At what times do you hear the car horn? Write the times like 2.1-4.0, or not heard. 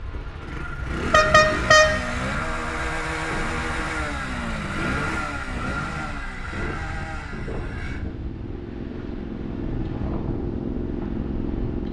0.8-1.9.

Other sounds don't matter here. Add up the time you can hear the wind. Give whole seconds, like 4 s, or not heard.
12 s.